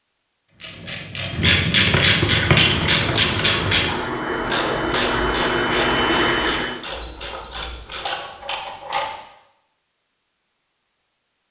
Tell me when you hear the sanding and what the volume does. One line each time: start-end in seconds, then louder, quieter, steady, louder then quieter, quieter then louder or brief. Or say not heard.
not heard.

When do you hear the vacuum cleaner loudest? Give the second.
6 s.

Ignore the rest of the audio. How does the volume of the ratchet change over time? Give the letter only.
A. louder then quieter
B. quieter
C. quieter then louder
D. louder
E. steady
B.